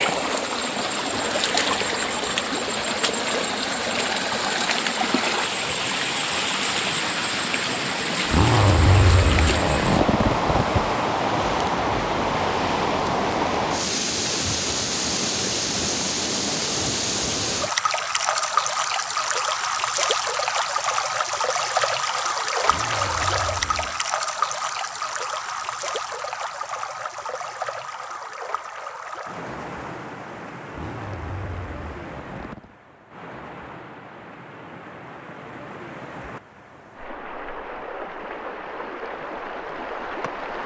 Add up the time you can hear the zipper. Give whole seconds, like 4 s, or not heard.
6 s.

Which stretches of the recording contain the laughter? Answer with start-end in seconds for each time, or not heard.
not heard.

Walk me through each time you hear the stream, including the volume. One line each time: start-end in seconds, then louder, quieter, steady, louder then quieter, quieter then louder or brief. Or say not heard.
0.0-40.6 quieter.